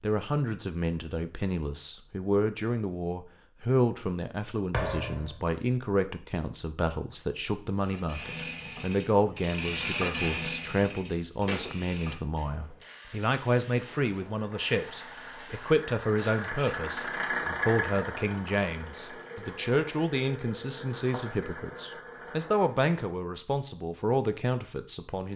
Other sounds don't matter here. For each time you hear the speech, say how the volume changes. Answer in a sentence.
You can hear the speech from 0.0 to 25.3 s, at a steady volume.